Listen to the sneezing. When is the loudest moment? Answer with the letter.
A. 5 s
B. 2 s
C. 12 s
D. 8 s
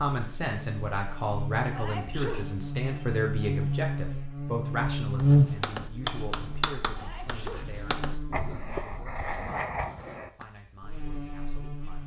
B.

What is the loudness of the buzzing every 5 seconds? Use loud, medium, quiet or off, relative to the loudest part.
medium, loud, quiet.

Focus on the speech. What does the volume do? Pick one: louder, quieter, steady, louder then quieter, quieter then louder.
quieter.